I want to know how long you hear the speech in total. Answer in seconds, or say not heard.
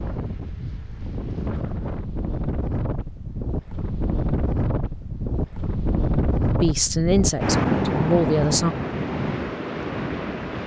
2 s.